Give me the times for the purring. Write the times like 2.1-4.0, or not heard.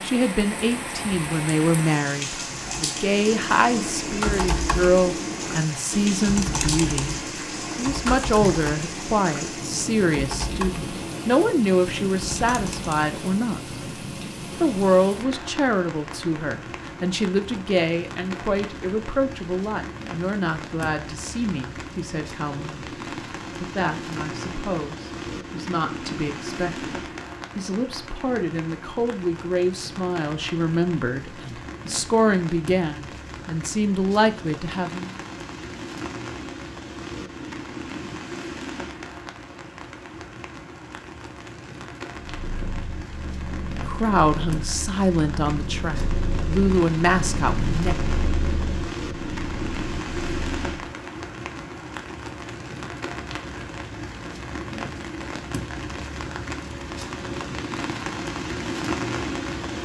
42.2-50.7.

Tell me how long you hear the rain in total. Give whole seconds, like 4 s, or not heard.
60 s.